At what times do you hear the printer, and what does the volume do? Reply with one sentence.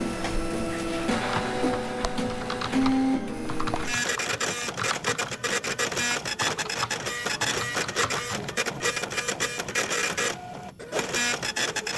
You can hear the printer from 0.0 to 11.9 s, at a steady volume.